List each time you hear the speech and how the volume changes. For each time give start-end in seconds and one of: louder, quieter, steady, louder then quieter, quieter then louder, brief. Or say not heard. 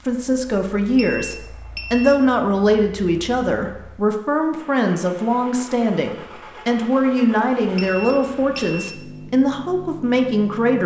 0.1-10.8 steady.